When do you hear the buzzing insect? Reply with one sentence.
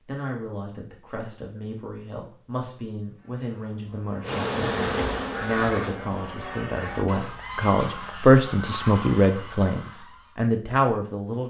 You can hear the buzzing insect from 4.2 to 6.0 s.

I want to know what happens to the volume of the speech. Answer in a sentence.
The loudness of the speech goes up.